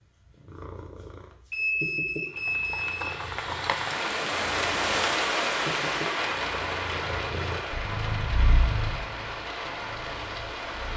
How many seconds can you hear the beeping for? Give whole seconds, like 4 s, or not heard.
2 s.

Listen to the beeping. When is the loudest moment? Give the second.
2 s.